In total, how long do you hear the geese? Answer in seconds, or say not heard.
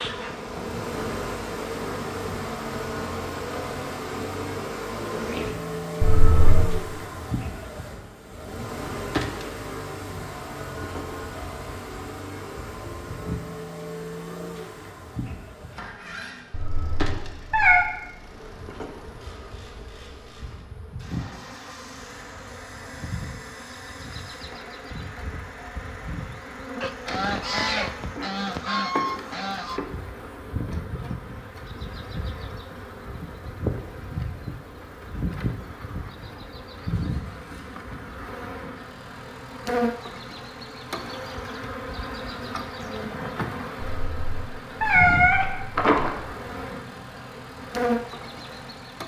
3 s.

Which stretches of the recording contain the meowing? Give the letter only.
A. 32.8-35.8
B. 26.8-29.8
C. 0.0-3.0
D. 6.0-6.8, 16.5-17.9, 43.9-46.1
D.